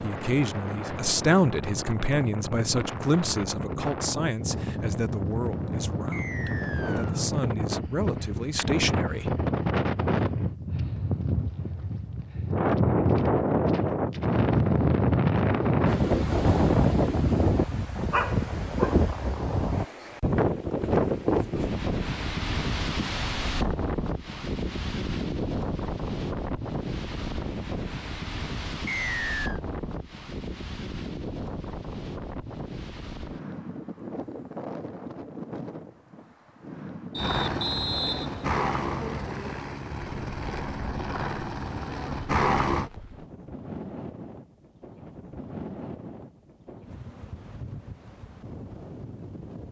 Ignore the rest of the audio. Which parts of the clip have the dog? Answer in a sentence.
You can hear the dog from 18.1 to 19.1 s.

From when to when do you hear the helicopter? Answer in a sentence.
The helicopter can be heard from 37.1 to 42.9 s.